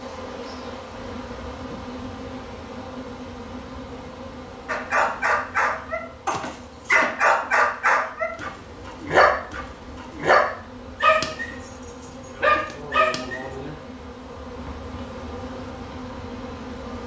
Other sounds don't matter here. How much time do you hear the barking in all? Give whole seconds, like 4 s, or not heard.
9 s.